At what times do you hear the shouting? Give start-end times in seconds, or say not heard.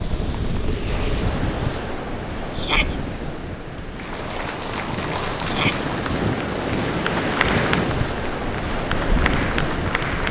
2.5-3.0, 5.4-5.8.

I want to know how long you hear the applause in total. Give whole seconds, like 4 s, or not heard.
6 s.